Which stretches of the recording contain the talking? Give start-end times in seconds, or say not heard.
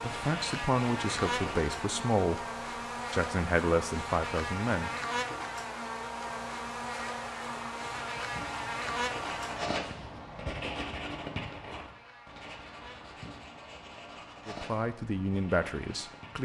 0.0-2.5, 3.1-5.2, 14.4-16.3.